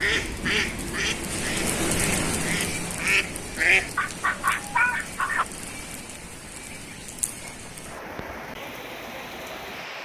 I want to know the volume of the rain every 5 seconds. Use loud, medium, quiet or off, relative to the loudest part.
loud, medium.